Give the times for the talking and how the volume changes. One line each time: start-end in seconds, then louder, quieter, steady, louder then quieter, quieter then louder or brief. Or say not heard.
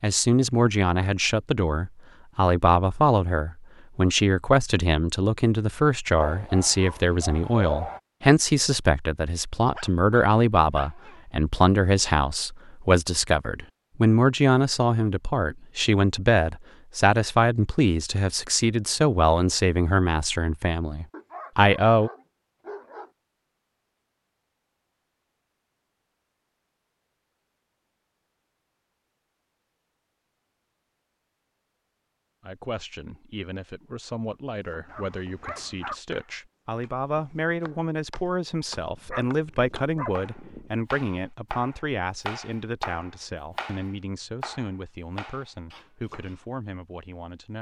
0.0-22.1 steady
32.4-47.5 louder then quieter.